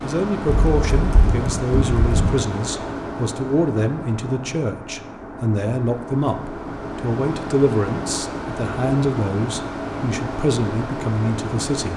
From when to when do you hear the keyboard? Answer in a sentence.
The keyboard can be heard from 0.5 to 2.4 s.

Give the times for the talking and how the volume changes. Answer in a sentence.
You can hear the talking from 0.0 to 11.9 s, at a steady volume.